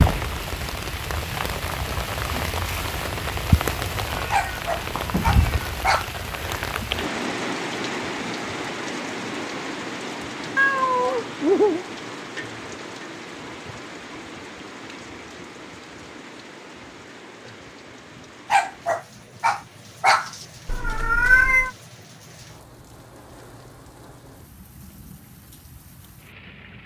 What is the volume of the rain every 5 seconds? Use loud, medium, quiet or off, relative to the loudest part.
loud, loud, medium, quiet, quiet, quiet.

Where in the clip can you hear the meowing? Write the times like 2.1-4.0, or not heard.
4.3-5.8, 10.6-11.8, 20.6-21.7.